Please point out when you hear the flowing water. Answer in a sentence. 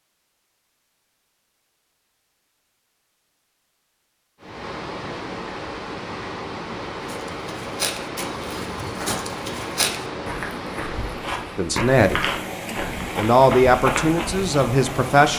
The flowing water can be heard from 4.4 to 15.3 s.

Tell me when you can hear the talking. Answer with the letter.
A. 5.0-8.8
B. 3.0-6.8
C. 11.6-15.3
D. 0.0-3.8
C.